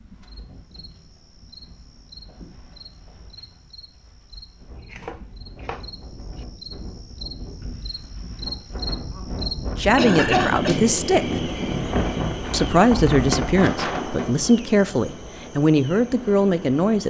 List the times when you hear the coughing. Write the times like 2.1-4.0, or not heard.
9.2-10.8.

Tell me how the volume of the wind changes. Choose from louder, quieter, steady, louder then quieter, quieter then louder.
louder.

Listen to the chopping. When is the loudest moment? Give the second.
5 s.